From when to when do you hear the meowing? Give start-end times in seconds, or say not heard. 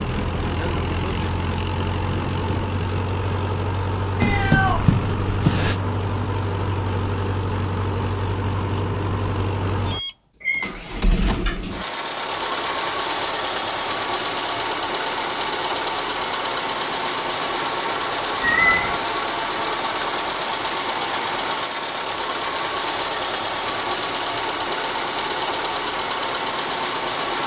4.2-5.8, 10.4-11.8, 18.4-19.0.